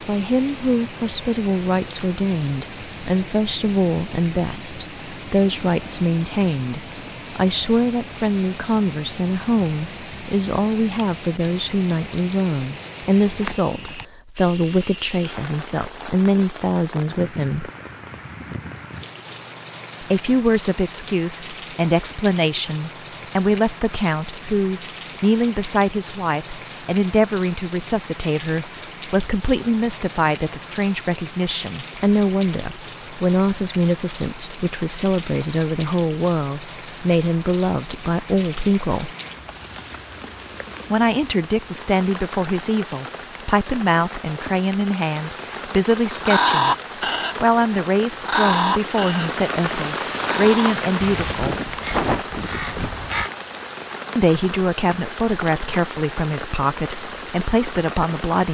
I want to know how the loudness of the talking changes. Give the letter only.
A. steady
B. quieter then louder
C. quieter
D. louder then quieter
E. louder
A.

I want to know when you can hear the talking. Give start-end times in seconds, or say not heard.
0.1-17.7, 20.0-39.1, 40.9-46.8, 47.4-51.5, 54.1-58.4.